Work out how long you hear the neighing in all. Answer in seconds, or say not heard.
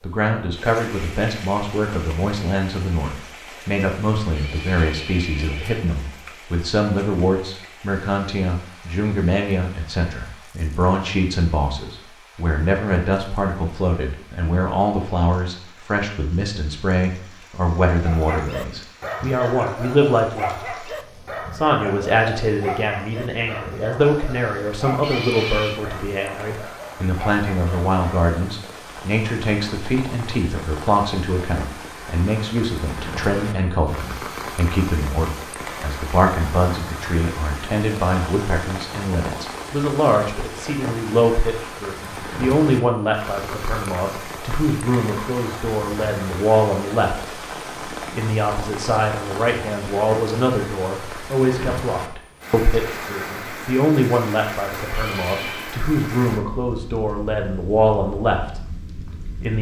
3 s.